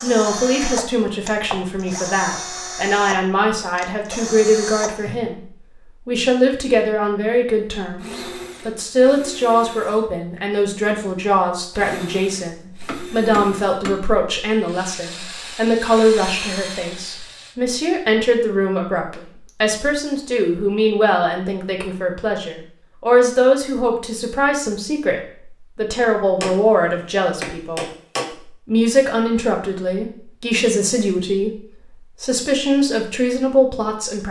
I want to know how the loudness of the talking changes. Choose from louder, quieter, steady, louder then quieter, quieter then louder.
steady.